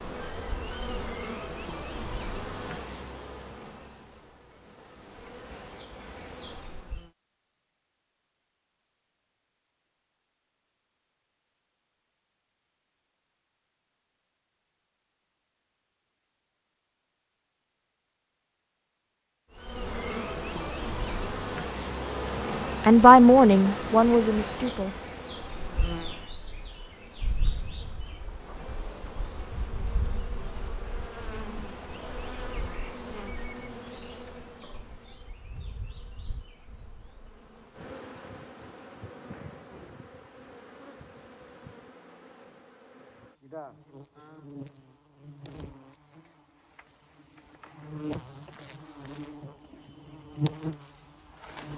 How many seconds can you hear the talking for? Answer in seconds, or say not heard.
2 s.